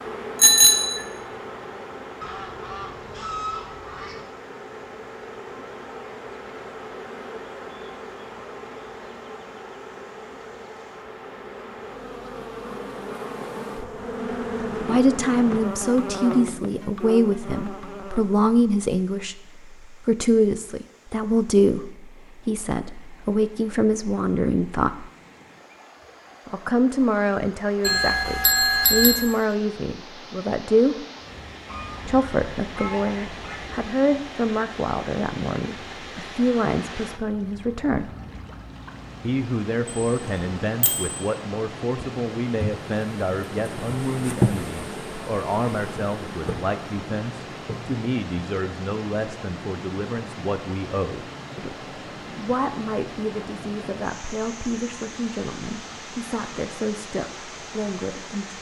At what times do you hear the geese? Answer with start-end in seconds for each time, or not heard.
2.2-4.2, 31.6-33.7.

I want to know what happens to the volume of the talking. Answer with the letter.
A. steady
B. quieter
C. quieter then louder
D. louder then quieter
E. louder
B.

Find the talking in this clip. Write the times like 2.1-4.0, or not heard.
14.8-25.1, 26.4-31.1, 32.0-38.1, 39.2-58.5.